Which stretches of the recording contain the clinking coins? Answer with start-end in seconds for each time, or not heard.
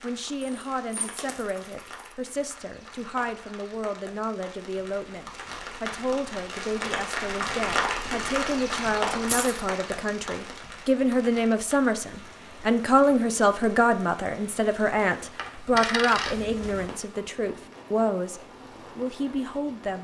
0.4-2.1, 9.2-9.7, 15.3-16.9.